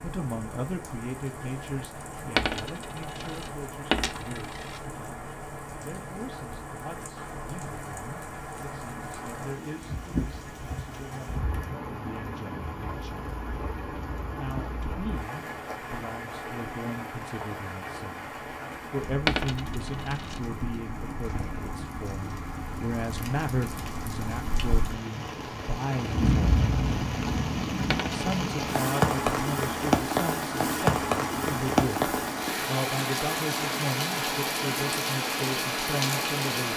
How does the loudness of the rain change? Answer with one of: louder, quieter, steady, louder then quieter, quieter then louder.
louder.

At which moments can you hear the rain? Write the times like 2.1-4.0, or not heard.
0.0-36.7.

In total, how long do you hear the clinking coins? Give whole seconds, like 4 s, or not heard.
4 s.